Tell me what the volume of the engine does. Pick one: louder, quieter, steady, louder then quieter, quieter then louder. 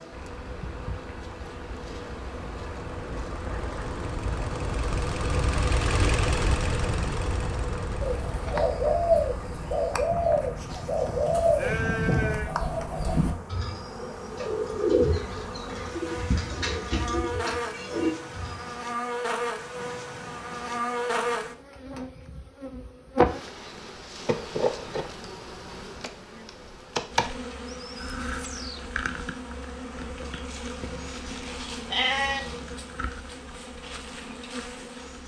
louder then quieter.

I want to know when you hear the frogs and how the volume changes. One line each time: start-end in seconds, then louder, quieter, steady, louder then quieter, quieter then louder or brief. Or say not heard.
not heard.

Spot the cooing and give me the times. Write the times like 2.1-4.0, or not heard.
8.0-18.8.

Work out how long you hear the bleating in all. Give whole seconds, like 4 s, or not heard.
4 s.